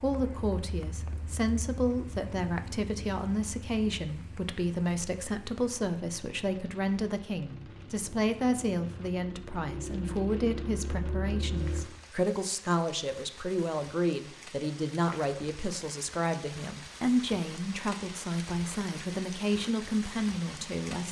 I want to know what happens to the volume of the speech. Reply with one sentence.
The loudness of the speech stays about the same.